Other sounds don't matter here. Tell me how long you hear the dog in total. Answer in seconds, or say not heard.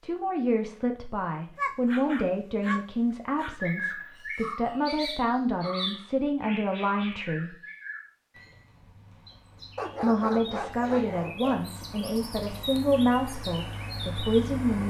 4 s.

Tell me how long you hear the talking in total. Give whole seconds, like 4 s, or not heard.
12 s.